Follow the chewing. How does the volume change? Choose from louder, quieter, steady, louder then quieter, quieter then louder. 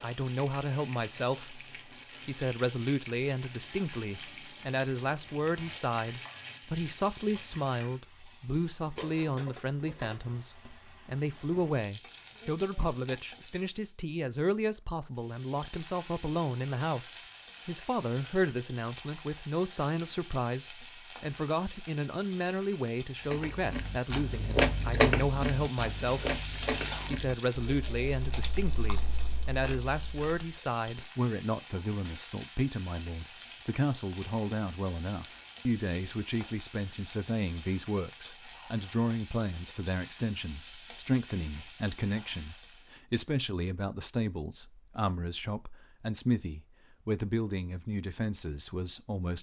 quieter.